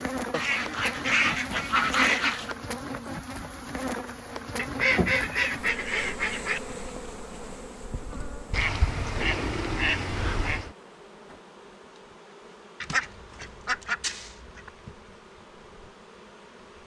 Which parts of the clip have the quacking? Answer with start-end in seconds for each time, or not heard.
0.3-2.5, 4.5-6.6, 8.5-10.8, 12.8-14.7.